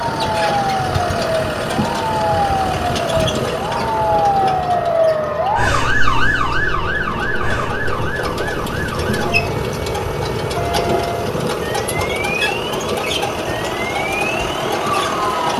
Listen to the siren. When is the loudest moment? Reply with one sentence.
The volume of the siren peaks at 5 seconds.